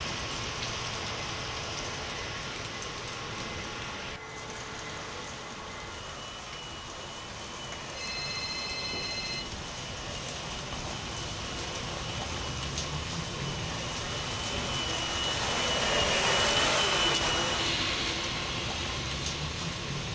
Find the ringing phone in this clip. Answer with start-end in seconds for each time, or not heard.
7.9-9.4.